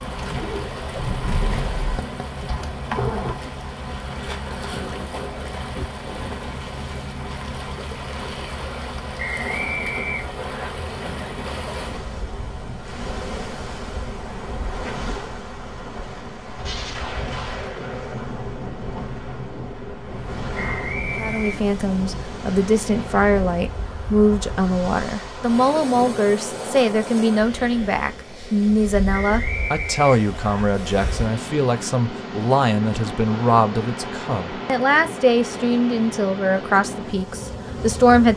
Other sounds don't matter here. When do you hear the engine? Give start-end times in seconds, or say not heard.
0.1-3.4.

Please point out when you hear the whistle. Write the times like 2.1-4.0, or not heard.
9.2-10.7, 20.6-21.6, 29.2-30.6.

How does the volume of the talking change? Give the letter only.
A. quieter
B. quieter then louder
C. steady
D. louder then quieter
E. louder
C.